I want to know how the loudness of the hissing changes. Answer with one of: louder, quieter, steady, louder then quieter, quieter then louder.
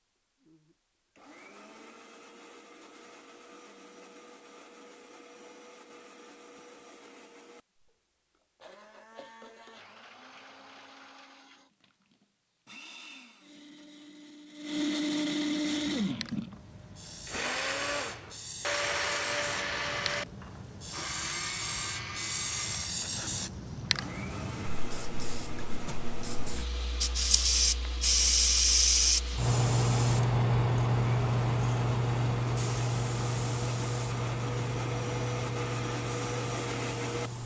louder then quieter.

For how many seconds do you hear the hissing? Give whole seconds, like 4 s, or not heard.
22 s.